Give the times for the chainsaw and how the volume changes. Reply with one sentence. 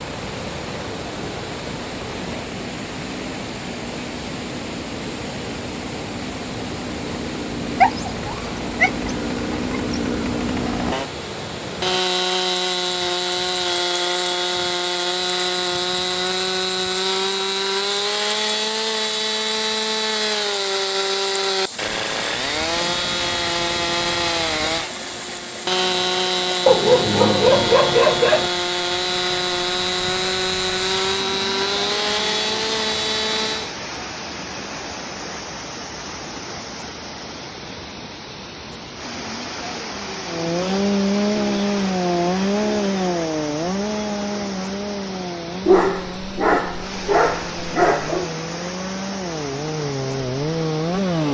You can hear the chainsaw from 0.0 to 33.8 s, getting louder; and from 40.2 to 51.3 s, getting quieter then louder.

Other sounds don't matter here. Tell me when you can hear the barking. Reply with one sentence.
The barking can be heard from 7.8 to 9.9 s, from 26.6 to 28.5 s and from 45.6 to 48.3 s.